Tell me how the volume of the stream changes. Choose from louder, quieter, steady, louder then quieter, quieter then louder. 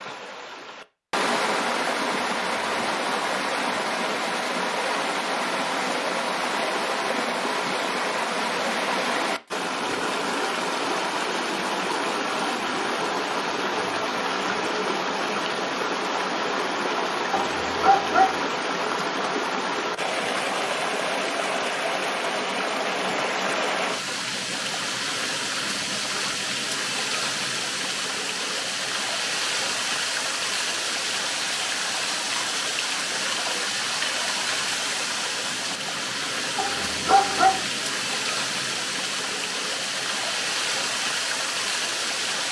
steady.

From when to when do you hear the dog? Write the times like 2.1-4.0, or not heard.
17.4-18.4, 36.5-37.6.